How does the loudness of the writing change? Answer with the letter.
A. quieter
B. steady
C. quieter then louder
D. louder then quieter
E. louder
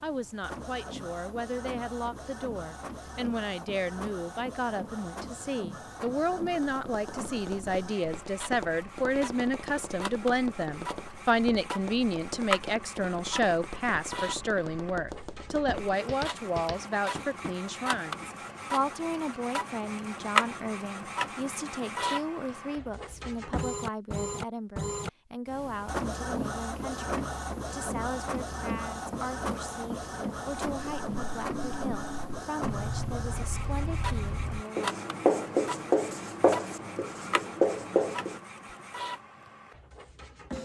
E.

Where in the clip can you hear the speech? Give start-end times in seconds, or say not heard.
0.0-35.0.